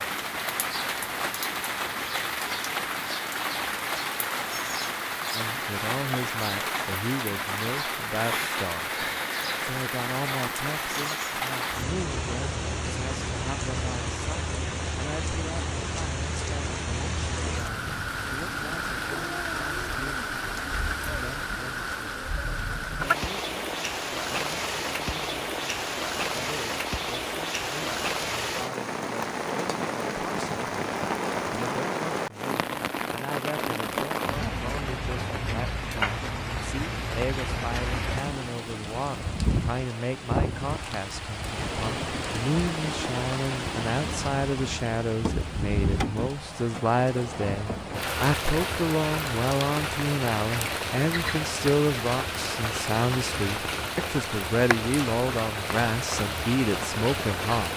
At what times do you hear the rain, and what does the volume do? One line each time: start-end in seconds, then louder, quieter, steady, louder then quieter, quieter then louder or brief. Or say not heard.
0.0-57.7 steady.